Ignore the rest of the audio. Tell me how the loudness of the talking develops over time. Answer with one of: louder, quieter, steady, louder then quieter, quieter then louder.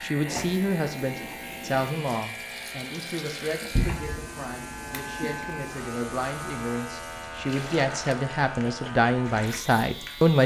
quieter then louder.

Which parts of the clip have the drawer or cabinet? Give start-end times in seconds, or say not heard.
3.8-4.2.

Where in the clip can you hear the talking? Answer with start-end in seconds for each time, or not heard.
0.0-10.4.